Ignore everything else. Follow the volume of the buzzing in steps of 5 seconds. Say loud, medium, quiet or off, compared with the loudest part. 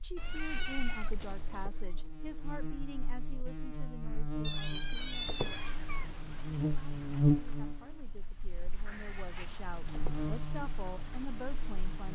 medium, loud, medium.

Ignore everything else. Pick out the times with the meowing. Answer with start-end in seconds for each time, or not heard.
0.1-1.7, 4.4-6.2, 8.8-9.5.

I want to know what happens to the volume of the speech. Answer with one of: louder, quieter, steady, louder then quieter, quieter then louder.
quieter then louder.